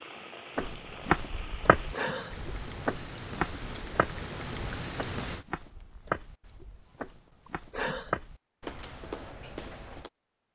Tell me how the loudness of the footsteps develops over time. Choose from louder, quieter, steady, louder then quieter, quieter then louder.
quieter then louder.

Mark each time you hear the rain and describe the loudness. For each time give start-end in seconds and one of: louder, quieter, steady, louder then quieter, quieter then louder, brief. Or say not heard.
0.0-5.5 louder.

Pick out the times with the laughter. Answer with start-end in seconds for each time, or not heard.
1.9-2.4, 7.5-8.1.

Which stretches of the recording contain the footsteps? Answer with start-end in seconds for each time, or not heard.
0.6-10.1.